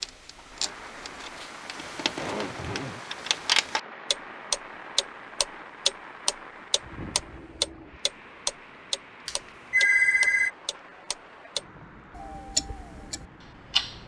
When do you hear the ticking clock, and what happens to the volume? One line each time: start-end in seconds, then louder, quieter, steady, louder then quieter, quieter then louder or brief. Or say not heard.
0.0-14.0 louder then quieter.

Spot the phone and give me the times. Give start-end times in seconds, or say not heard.
9.2-10.5.